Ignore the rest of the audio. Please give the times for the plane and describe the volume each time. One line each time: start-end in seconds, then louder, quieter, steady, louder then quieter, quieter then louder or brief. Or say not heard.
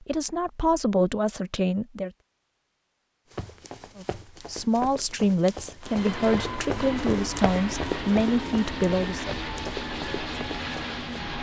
5.8-11.3 steady.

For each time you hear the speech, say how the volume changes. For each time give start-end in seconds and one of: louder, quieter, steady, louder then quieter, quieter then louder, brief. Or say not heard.
0.0-2.1 brief
4.0-9.3 steady.